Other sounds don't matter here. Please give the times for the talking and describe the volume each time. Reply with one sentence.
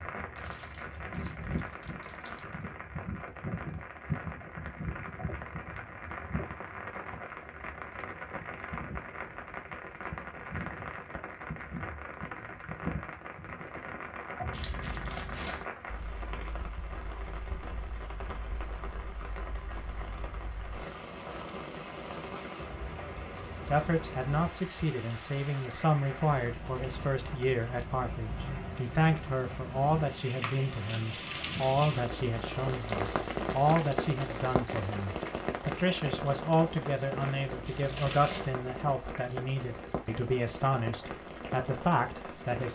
The talking can be heard from 23.7 to 42.7 s, at a steady volume.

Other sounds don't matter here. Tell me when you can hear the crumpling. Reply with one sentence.
The crumpling can be heard from 0.3 to 2.6 s, from 14.5 to 15.7 s and from 37.6 to 38.5 s.